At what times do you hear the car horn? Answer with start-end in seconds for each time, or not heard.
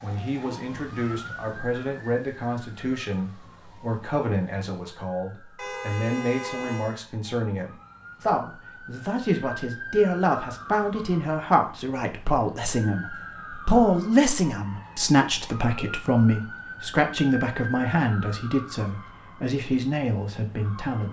5.5-7.0.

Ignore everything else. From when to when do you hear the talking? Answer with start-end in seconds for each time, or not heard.
0.0-21.0.